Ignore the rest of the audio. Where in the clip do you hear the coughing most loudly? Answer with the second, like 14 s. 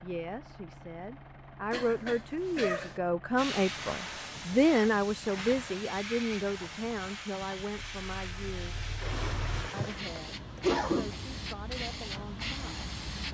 11 s.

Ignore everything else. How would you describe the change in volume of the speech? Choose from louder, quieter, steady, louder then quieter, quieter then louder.
louder then quieter.